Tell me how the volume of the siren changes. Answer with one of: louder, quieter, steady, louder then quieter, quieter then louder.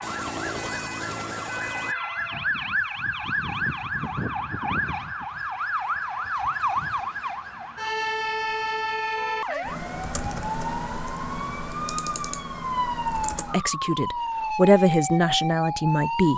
steady.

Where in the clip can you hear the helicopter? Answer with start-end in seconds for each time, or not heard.
0.0-1.9.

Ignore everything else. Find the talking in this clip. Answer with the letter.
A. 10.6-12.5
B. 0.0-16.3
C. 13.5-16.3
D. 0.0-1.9
C.